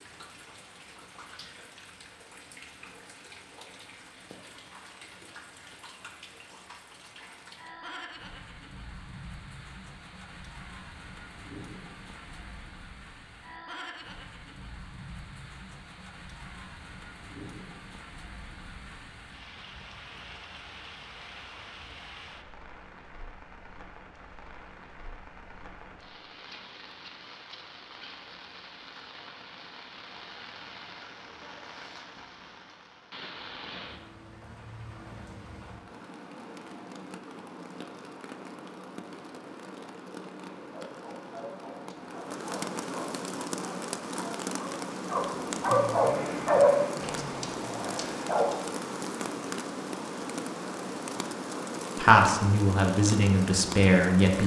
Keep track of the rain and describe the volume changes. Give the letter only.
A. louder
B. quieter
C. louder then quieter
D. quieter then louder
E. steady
A.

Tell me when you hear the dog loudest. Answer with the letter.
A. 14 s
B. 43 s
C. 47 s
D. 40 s
C.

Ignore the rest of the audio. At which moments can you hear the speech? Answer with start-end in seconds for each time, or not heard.
52.0-54.4.